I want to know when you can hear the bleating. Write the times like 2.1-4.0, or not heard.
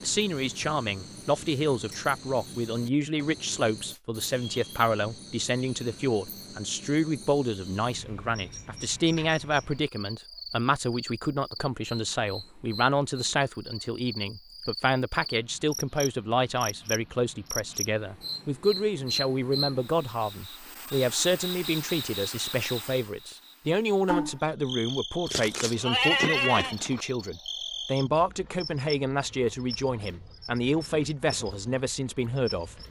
25.2-27.1.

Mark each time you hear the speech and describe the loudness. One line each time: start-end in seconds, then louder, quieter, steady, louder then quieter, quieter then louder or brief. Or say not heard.
0.0-32.8 steady.